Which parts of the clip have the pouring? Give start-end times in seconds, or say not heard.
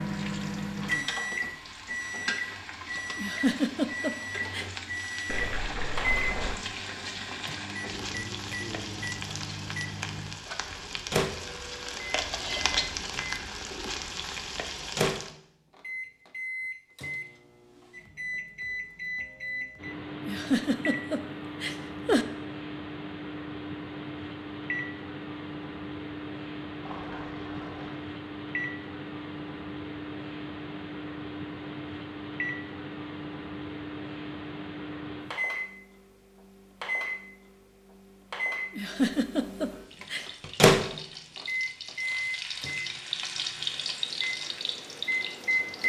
5.2-6.5, 26.8-28.1.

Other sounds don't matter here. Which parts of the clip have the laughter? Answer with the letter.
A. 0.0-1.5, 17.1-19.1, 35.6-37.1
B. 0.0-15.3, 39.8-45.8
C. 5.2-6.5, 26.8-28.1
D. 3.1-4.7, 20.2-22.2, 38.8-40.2
D.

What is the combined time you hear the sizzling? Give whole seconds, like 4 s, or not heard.
21 s.